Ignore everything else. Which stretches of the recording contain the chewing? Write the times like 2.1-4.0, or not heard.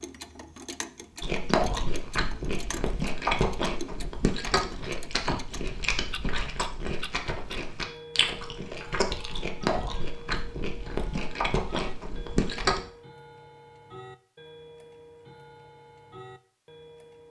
1.2-12.8.